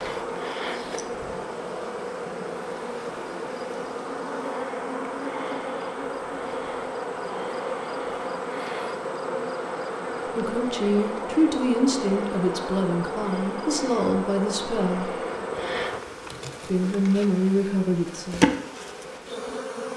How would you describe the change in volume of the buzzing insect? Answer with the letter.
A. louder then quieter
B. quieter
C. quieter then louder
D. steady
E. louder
D.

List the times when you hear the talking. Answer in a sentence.
The talking can be heard from 10.2 to 15.1 s and from 16.6 to 18.4 s.